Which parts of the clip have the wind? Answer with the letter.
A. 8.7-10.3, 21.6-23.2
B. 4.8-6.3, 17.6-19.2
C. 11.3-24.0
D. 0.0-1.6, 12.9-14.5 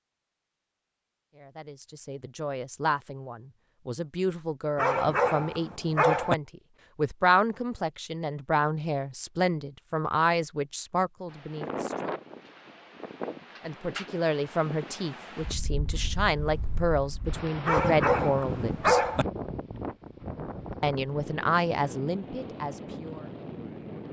C.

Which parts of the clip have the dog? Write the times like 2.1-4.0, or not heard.
4.8-6.3, 17.6-19.2.